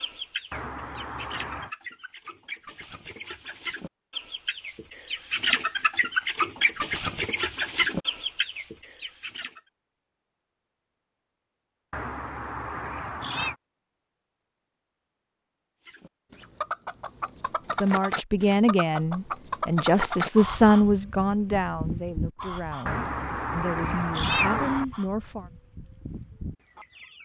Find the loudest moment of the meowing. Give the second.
24 s.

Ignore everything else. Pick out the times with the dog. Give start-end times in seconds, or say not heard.
not heard.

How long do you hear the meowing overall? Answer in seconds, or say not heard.
5 s.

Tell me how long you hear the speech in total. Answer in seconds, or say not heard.
8 s.